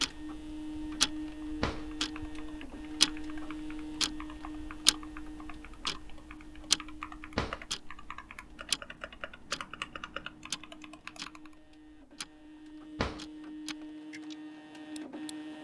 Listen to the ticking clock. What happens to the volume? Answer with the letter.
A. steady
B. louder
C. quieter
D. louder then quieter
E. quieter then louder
C.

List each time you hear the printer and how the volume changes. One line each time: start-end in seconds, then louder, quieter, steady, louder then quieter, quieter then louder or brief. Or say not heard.
0.0-15.5 quieter then louder.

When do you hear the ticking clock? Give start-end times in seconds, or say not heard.
0.0-15.3.